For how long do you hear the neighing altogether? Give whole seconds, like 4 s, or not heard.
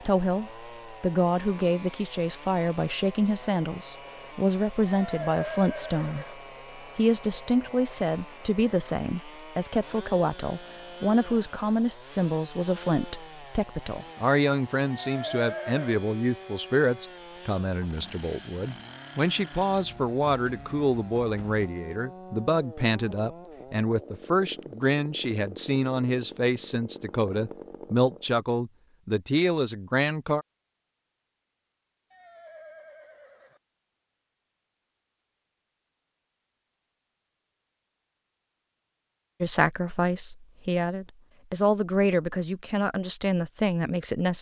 4 s.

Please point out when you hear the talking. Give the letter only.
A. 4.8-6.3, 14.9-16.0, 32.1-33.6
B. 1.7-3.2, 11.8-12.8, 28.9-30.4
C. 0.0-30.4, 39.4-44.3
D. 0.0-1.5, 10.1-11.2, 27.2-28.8
C.